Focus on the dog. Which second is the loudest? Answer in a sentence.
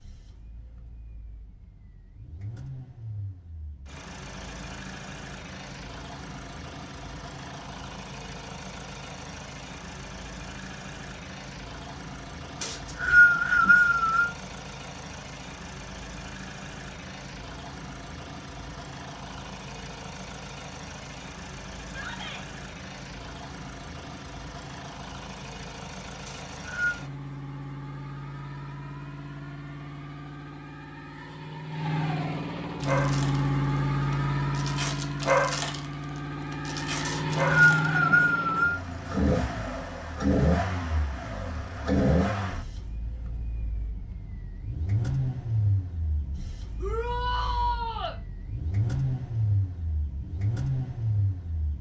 The volume of the dog peaks at 35 seconds.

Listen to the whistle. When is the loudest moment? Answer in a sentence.
The loudest moment of the whistle is at 13 seconds.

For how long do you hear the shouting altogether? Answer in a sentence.
You can hear the shouting for 2 seconds altogether.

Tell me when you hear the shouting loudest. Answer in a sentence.
The loudest moment of the shouting is at 48 seconds.